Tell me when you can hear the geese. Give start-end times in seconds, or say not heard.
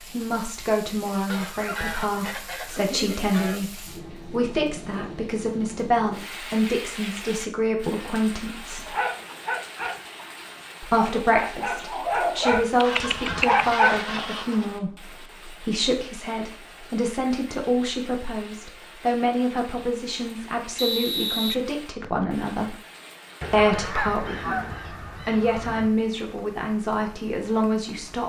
1.2-3.6, 12.8-14.8, 23.4-25.9.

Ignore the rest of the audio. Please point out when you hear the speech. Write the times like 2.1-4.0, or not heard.
0.0-8.9, 10.8-22.8, 23.5-24.6, 25.2-28.2.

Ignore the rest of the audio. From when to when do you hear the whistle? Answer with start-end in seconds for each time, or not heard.
20.8-22.2.